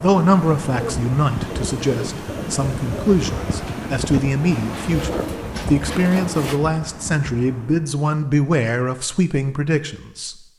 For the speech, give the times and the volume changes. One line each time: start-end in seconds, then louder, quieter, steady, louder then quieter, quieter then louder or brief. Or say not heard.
0.0-10.3 steady.